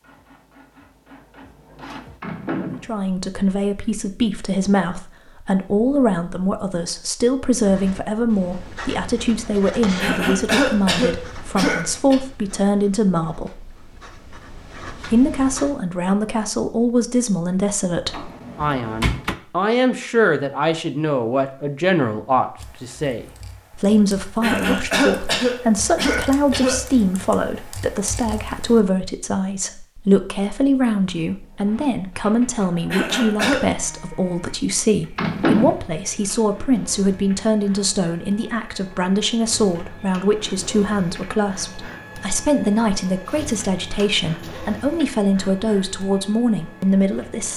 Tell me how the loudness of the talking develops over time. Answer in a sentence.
The loudness of the talking stays about the same.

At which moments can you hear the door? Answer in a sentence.
The door can be heard from 2.2 to 3.0 s, from 18.1 to 19.4 s and from 35.1 to 35.8 s.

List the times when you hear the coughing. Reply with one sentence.
You can hear the coughing from 10.0 to 12.2 s, from 24.4 to 26.8 s and from 32.9 to 33.6 s.